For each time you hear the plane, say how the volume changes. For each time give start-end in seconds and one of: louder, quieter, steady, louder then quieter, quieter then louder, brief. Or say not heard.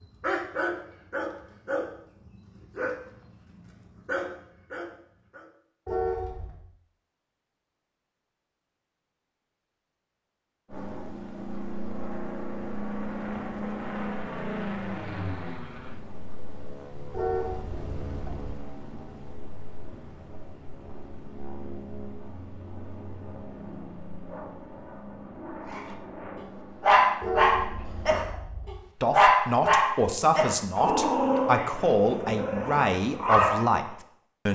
10.7-28.2 quieter.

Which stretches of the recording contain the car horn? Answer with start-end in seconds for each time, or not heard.
5.8-6.6, 17.1-18.5, 27.2-28.7.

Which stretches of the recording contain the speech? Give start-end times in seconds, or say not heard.
29.0-34.5.